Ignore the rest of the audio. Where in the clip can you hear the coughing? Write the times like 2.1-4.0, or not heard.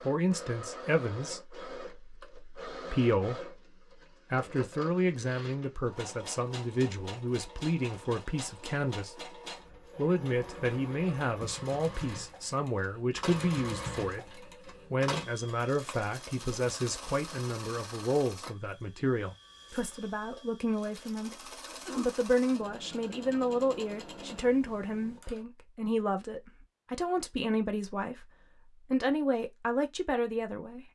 21.6-22.1.